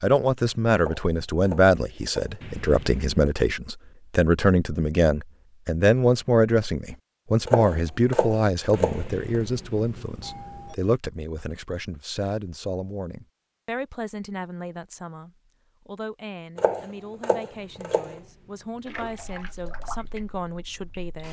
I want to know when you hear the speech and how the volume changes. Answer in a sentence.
You can hear the speech from 0.0 to 21.2 s, getting quieter.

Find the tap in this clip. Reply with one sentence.
The tap can be heard from 18.9 to 21.2 s.